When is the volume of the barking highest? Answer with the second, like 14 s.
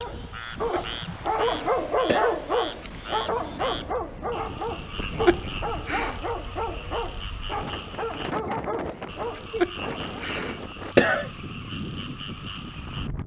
2 s.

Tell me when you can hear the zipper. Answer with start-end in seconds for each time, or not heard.
not heard.